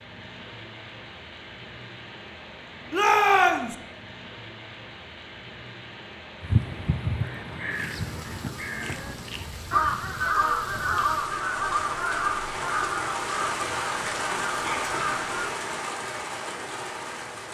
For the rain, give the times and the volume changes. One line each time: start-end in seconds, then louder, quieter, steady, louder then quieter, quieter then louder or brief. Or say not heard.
0.0-17.4 louder.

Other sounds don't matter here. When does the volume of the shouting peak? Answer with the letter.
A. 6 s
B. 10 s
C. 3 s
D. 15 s
C.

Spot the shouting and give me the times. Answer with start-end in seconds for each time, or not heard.
2.9-3.8, 14.4-14.9.